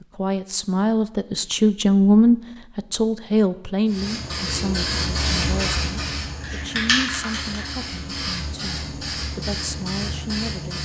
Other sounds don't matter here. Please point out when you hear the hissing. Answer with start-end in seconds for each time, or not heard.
3.9-10.8.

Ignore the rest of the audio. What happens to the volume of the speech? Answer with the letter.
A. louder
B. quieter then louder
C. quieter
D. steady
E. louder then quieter
C.